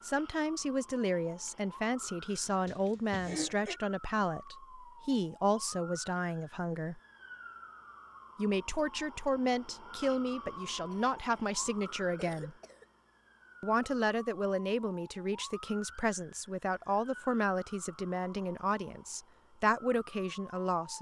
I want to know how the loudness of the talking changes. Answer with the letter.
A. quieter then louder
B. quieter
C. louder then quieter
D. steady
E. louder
D.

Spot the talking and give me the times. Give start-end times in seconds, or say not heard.
0.0-7.0, 8.3-12.6, 13.6-20.9.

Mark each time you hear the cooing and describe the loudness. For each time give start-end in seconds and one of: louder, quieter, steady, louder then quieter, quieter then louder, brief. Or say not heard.
not heard.